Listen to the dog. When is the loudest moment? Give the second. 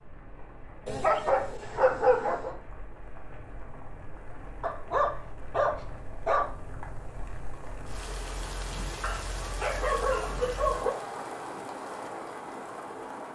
2 s.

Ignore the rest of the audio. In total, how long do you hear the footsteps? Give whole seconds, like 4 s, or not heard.
not heard.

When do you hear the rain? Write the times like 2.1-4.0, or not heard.
0.0-13.3.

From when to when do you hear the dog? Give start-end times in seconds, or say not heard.
0.8-2.5, 4.6-6.5, 9.0-10.9.